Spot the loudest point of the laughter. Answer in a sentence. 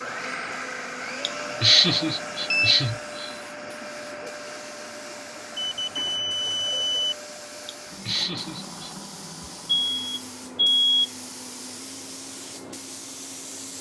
The loudest moment of the laughter is at 2 seconds.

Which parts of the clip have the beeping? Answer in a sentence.
You can hear the beeping from 1.9 to 2.8 s, from 5.5 to 7.2 s and from 9.9 to 10.8 s.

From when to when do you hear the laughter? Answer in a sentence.
You can hear the laughter from 1.2 to 3.3 s and from 7.7 to 8.9 s.